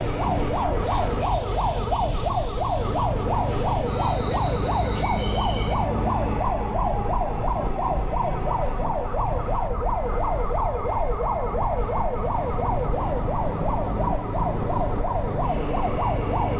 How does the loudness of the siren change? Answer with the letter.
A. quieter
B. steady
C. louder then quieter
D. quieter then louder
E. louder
B.